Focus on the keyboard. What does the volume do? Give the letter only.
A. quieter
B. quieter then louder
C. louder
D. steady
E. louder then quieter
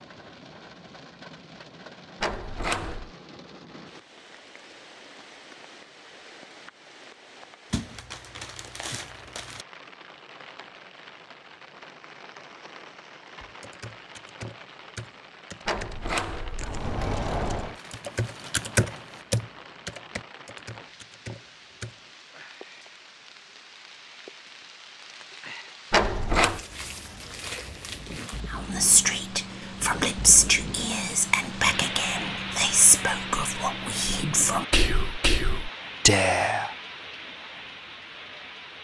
E.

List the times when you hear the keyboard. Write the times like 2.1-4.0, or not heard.
13.4-22.0.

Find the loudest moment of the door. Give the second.
26 s.